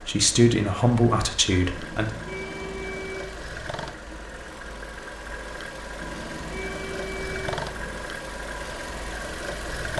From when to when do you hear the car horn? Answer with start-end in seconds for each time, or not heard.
1.8-3.4, 6.0-8.0.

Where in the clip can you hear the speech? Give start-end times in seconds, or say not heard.
0.0-2.1.